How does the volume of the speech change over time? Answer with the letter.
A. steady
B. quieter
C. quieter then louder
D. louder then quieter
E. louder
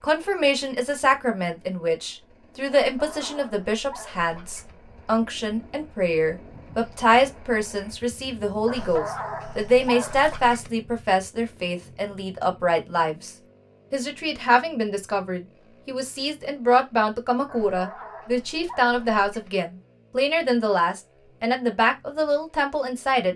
A.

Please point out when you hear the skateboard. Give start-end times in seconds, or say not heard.
not heard.